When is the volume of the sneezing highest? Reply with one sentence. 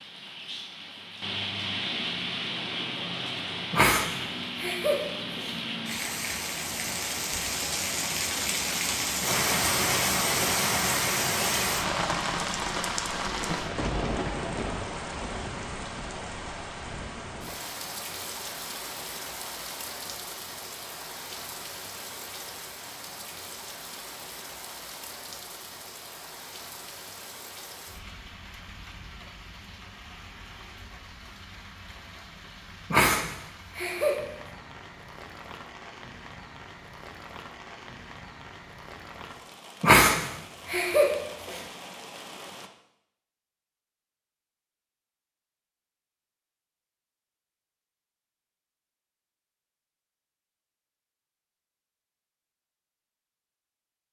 The loudest moment of the sneezing is at 40 seconds.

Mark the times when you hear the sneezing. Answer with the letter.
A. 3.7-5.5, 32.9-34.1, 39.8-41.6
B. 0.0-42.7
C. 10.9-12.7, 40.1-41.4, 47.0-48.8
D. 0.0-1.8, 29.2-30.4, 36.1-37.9
A.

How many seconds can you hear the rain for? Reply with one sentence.
You can hear the rain for 43 seconds altogether.